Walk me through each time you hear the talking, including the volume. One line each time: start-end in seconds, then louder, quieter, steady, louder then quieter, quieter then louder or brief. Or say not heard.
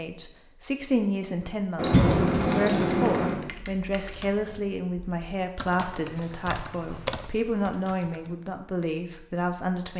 0.0-9.9 steady.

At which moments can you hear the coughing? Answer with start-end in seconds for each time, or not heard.
1.9-2.5.